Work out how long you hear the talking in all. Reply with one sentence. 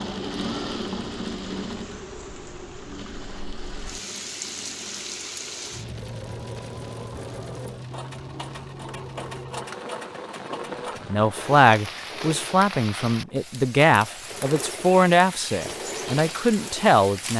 You can hear the talking for 6 seconds altogether.